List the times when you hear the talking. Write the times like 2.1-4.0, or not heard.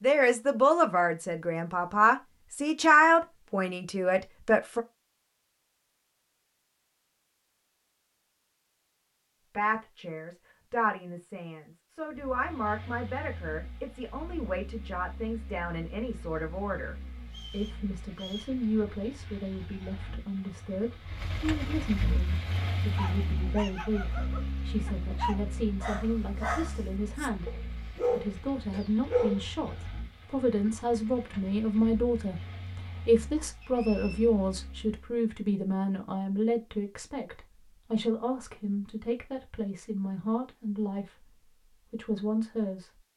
0.0-4.8, 9.5-43.0.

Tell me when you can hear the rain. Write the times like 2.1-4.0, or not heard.
not heard.